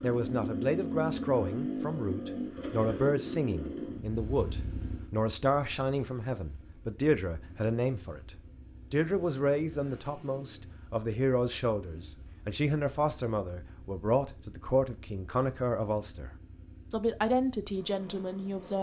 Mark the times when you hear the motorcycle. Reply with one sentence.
The motorcycle can be heard from 0.0 to 18.7 s.